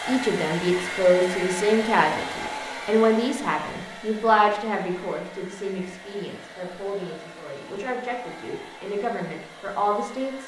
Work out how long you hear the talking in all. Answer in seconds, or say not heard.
10 s.